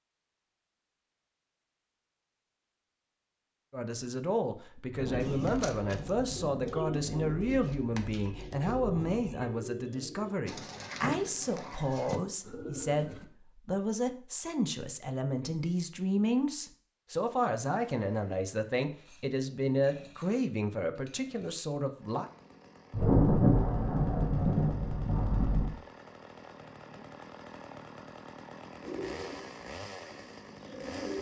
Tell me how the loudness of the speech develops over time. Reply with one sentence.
The loudness of the speech stays about the same.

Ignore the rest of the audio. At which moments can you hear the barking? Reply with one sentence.
The barking can't be heard in this clip.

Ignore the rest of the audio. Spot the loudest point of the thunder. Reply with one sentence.
The loudest moment of the thunder is at 23 seconds.